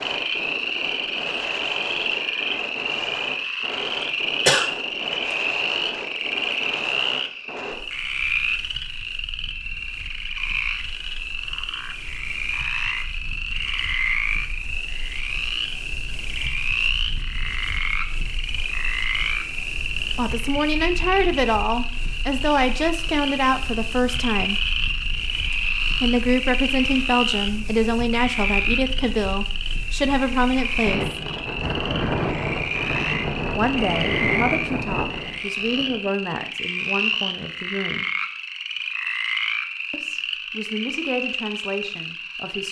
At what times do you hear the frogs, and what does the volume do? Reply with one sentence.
You can hear the frogs from 0.0 to 42.6 s, at a steady volume.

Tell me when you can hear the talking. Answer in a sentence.
The talking can be heard from 20.1 to 24.6 s, from 26.0 to 31.1 s, from 33.5 to 38.1 s and from 39.9 to 42.6 s.